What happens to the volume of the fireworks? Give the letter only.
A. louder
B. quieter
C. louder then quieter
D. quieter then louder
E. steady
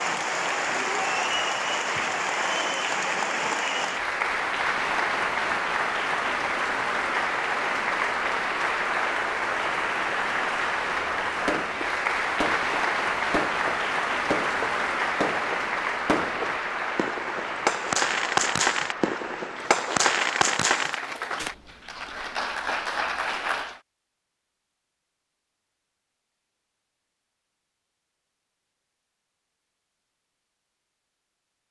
A.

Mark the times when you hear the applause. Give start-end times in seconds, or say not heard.
0.0-23.8.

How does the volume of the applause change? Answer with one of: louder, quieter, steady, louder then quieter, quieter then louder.
quieter.